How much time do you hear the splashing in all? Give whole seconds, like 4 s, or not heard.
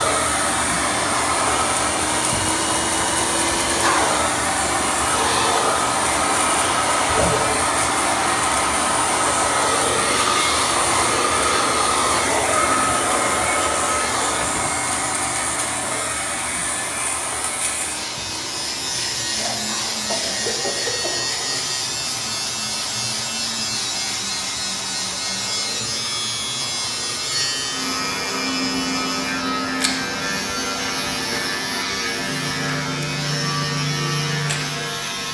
not heard.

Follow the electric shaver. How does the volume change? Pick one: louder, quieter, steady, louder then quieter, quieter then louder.
louder.